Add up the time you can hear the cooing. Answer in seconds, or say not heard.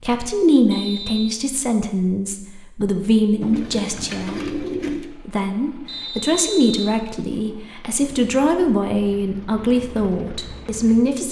2 s.